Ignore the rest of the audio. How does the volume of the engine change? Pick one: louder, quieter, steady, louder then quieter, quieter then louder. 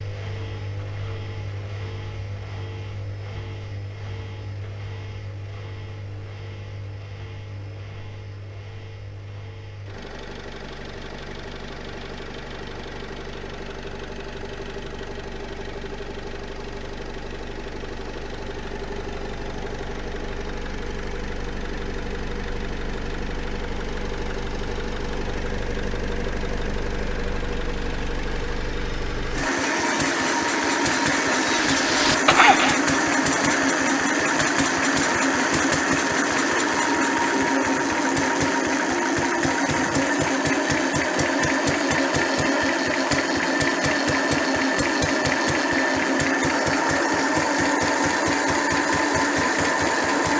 louder.